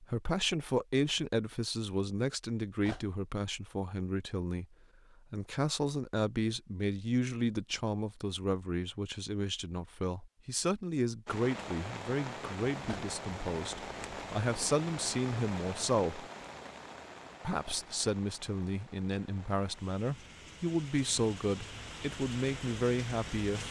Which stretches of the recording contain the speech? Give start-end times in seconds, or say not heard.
0.0-4.7, 5.3-16.2, 17.4-23.6.